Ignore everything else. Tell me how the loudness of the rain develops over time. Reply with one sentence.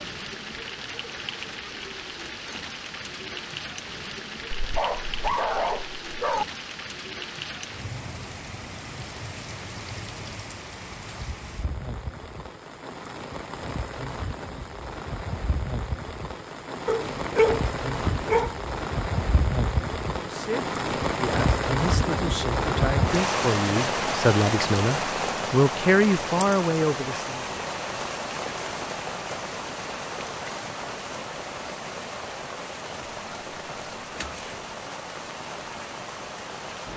The volume of the rain goes up, then down.